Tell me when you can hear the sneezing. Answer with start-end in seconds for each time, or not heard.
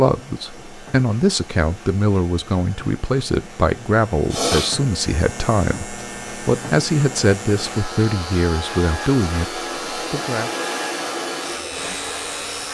4.3-4.8.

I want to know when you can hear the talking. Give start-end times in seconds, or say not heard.
0.0-10.5.